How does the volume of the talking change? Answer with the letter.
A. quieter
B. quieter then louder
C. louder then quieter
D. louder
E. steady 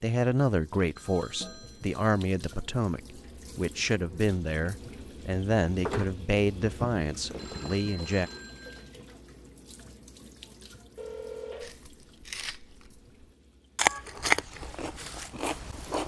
E.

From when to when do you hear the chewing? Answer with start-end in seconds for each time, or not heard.
11.6-12.9, 13.8-16.0.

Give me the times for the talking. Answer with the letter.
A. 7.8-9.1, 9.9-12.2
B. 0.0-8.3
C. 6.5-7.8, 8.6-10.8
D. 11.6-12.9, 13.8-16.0
B.